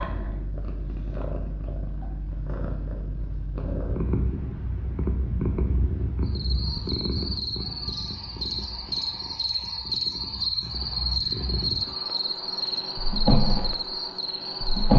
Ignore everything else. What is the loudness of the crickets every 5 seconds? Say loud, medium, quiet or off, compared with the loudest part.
off, loud, loud.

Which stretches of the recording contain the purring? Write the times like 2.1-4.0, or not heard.
0.0-14.9.